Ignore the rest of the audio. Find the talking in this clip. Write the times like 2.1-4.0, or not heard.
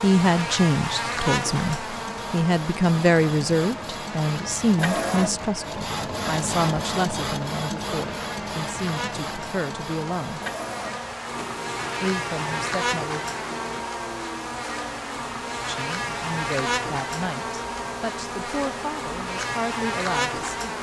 0.0-10.4, 12.0-13.2, 15.7-20.7.